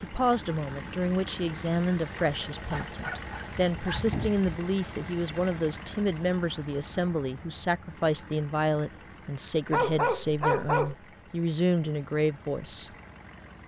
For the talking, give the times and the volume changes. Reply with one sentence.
You can hear the talking from 0.0 to 12.9 s, at a steady volume.